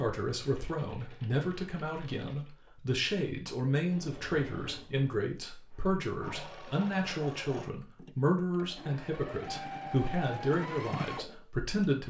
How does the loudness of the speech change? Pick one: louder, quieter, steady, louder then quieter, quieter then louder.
steady.